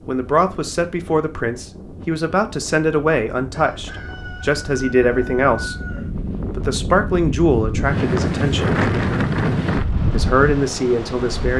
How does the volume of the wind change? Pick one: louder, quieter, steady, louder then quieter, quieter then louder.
louder.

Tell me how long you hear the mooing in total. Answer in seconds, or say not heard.
not heard.